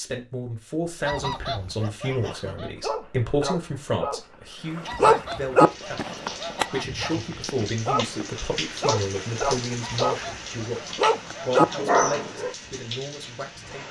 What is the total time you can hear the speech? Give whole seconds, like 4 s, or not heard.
13 s.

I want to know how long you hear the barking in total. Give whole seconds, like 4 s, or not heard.
10 s.